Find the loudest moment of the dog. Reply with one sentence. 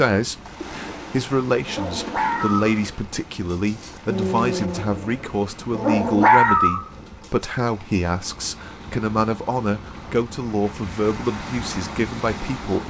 The loudest moment of the dog is at 6 seconds.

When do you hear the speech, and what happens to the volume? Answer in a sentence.
The speech can be heard from 0.0 to 12.8 s, at a steady volume.